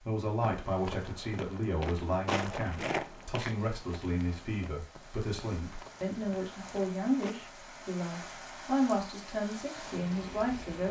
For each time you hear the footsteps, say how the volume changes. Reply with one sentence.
The footsteps can be heard from 0.4 to 7.3 s, getting louder then quieter.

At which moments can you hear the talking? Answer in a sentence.
You can hear the talking from 0.1 to 10.8 s.